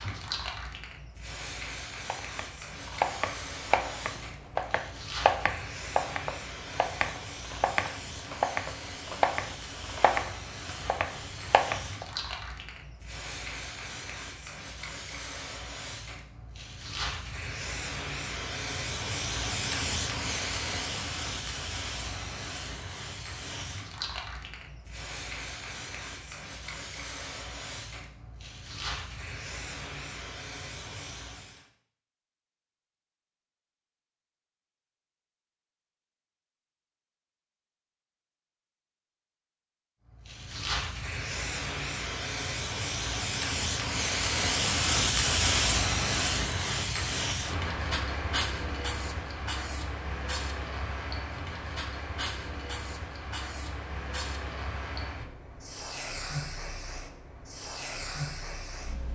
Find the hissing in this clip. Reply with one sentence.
The hissing can be heard from 0.0 to 31.6 s and from 40.1 to 59.1 s.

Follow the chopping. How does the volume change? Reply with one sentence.
The volume of the chopping stays about the same.